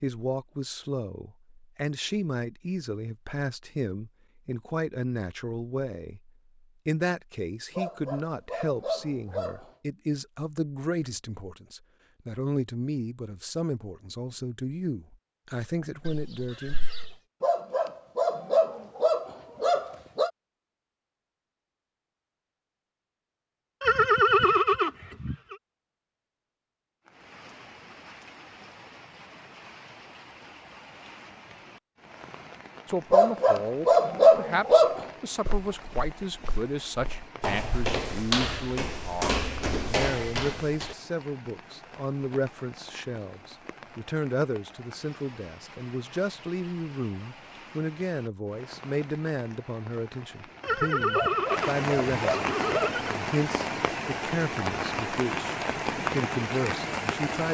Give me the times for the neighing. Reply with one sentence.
You can hear the neighing from 16.1 to 17.1 s, from 23.8 to 25.6 s and from 50.6 to 53.1 s.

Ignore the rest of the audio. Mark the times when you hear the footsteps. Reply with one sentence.
The footsteps can be heard from 35.5 to 41.0 s.